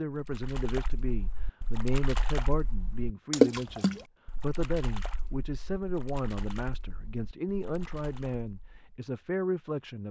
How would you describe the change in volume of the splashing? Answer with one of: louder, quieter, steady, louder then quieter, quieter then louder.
louder then quieter.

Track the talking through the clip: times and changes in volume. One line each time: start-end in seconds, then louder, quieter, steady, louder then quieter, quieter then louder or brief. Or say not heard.
0.0-10.0 steady.